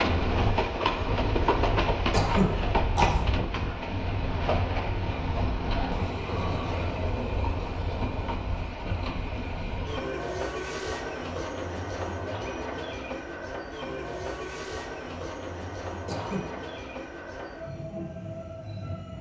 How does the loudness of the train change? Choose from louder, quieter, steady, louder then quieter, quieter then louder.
quieter.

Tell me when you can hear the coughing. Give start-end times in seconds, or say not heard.
2.1-3.2, 16.1-16.6.